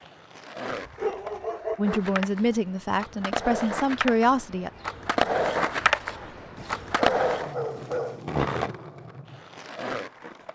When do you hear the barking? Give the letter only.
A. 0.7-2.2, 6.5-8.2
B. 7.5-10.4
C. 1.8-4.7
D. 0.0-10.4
A.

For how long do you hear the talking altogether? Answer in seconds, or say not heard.
3 s.